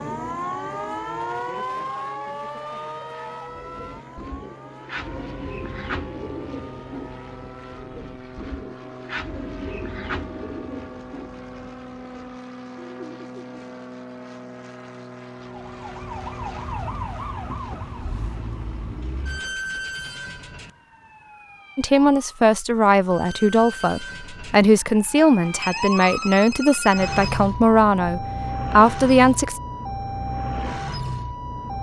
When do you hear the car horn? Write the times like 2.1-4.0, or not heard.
not heard.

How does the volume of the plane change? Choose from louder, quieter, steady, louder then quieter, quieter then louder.
louder then quieter.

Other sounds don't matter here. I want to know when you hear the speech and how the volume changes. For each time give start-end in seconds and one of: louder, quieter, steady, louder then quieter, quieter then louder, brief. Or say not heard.
21.8-29.6 steady.